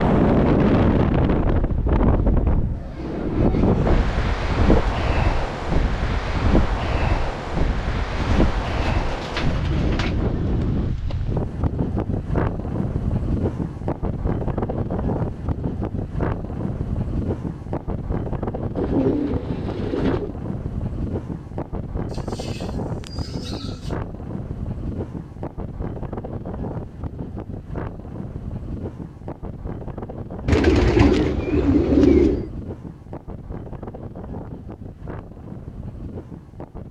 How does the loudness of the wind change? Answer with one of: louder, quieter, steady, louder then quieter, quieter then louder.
quieter.